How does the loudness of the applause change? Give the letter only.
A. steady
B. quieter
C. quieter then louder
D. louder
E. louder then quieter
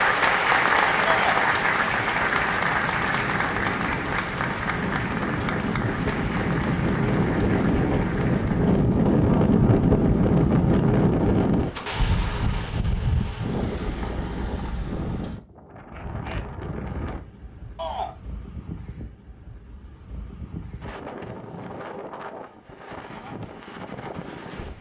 B.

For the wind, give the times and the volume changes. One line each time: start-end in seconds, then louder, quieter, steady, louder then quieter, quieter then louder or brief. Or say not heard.
0.0-24.7 louder then quieter.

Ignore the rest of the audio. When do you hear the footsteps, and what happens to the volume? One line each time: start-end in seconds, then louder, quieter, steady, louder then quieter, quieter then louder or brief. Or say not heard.
not heard.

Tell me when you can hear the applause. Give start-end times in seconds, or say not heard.
0.0-8.8.